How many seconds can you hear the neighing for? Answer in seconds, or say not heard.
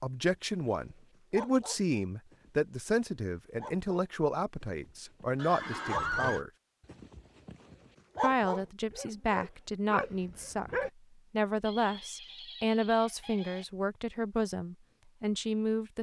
3 s.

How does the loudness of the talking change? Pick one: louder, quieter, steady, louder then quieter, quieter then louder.
steady.